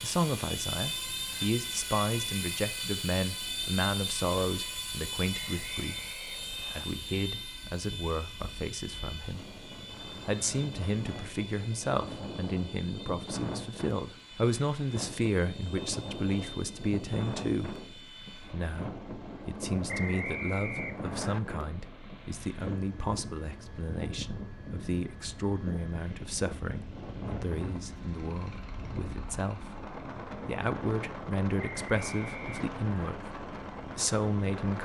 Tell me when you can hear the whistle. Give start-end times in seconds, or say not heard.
5.3-6.8, 19.9-21.4, 31.6-33.1.